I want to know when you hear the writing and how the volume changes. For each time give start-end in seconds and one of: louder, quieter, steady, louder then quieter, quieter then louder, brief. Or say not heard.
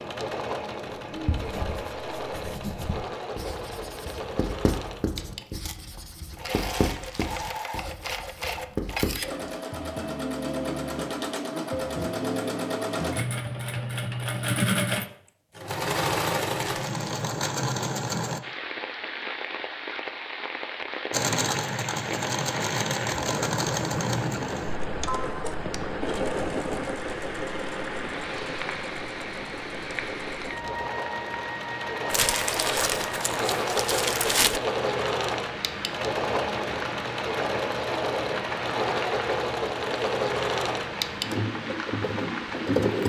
1.1-9.5 louder.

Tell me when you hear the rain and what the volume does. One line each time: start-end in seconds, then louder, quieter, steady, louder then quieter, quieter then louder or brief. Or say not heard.
18.4-43.0 steady.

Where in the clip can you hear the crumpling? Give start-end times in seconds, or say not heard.
6.7-7.7, 16.6-17.3, 32.1-34.6.